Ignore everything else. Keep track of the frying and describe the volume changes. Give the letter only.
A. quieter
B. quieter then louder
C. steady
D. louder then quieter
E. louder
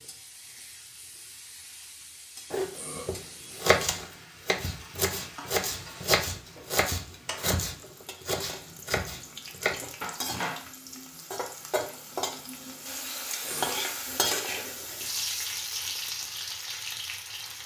E.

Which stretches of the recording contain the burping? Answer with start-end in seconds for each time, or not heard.
2.7-3.5, 13.4-14.2.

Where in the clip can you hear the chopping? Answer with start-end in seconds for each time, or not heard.
2.5-10.7.